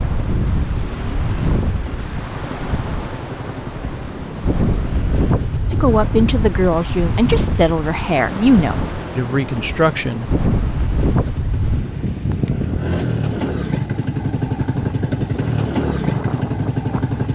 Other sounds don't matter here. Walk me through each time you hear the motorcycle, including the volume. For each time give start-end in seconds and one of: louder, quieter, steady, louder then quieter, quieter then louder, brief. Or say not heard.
0.0-17.2 louder.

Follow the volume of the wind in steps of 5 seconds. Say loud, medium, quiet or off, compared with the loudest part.
loud, loud, loud, medium.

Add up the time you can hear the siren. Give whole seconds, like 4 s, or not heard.
not heard.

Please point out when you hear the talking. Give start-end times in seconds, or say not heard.
5.7-10.3.